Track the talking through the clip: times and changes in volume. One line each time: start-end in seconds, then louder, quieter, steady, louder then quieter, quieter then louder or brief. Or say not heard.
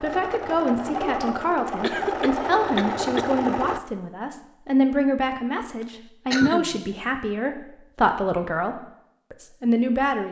0.0-10.2 steady.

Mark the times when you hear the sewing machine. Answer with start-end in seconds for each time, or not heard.
0.0-3.8.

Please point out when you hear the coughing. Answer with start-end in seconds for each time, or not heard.
1.8-3.3, 5.8-6.8.